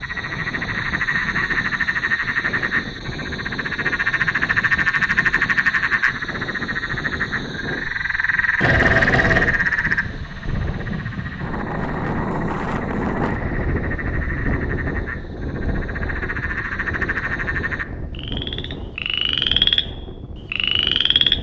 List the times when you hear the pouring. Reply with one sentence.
The pouring can be heard from 8.6 to 9.5 s.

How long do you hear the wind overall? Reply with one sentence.
You can hear the wind for 21 seconds altogether.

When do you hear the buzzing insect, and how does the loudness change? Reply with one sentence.
The buzzing insect can't be heard in this clip.